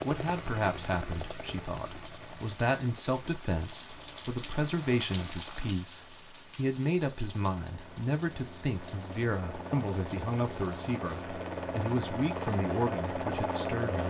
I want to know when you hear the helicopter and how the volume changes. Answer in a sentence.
You can hear the helicopter from 0.0 to 14.0 s, getting quieter then louder.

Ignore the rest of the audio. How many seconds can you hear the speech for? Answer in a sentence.
You can hear the speech for 14 seconds altogether.